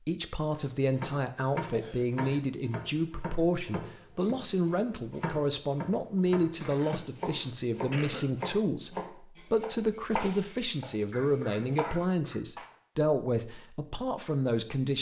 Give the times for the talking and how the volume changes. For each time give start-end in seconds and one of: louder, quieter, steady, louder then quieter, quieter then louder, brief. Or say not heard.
0.1-14.9 steady.